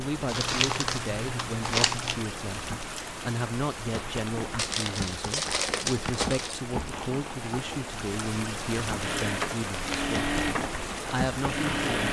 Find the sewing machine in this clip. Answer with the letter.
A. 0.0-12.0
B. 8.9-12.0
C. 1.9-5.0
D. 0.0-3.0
B.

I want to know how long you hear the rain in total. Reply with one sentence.
You can hear the rain for 12 seconds altogether.